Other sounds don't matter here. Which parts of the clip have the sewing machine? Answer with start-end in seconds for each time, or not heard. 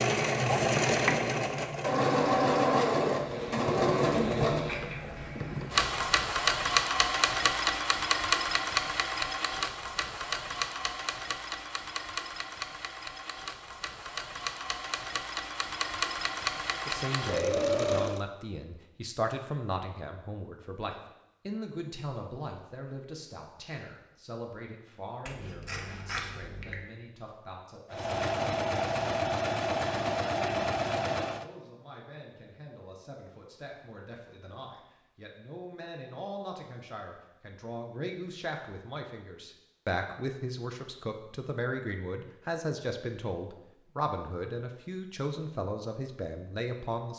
0.0-18.2, 27.9-31.4.